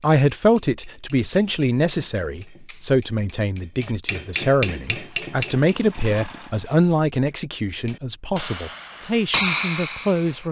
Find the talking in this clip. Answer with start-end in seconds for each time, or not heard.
0.0-10.4.